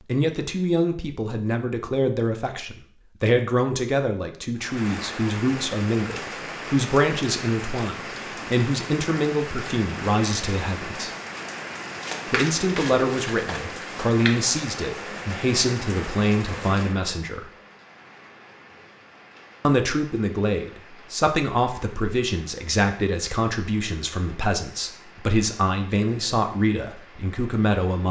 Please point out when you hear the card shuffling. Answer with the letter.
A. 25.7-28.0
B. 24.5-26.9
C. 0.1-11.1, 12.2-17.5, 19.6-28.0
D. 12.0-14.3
D.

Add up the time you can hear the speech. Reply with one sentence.
The speech can be heard for 25 seconds in total.